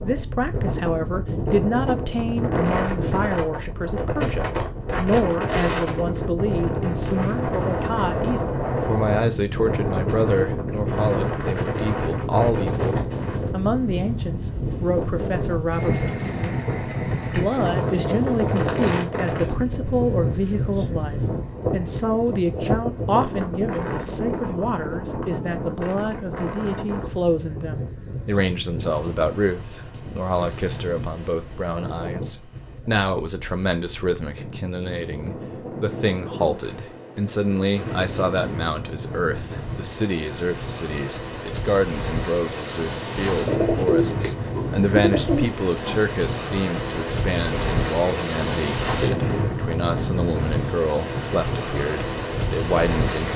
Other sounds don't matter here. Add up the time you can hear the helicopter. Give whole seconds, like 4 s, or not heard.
not heard.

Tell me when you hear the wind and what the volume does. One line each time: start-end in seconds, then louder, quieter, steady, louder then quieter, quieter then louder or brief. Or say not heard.
0.0-53.3 quieter then louder.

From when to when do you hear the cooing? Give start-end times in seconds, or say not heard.
43.1-46.0.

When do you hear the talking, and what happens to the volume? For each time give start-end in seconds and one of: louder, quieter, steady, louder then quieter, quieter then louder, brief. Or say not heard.
0.0-16.6 steady
17.2-53.3 steady.